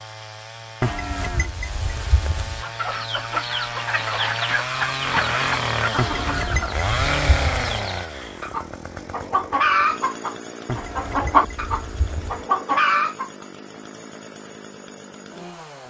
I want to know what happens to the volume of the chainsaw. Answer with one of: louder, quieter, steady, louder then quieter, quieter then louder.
louder then quieter.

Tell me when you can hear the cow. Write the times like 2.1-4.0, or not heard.
0.8-2.6, 6.0-7.7, 10.7-12.4.